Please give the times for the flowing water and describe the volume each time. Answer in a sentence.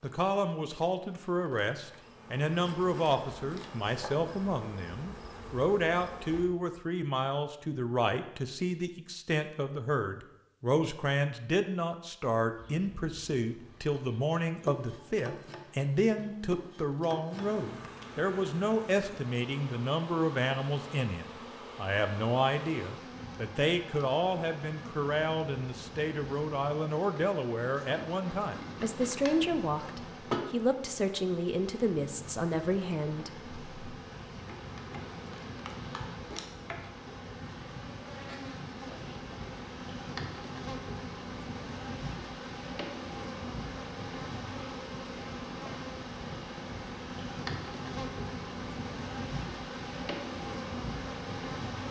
You can't hear the flowing water here.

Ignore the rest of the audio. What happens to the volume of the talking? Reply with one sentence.
The volume of the talking stays about the same.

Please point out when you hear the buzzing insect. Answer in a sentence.
You can hear the buzzing insect from 0.0 to 6.5 s and from 12.5 to 51.8 s.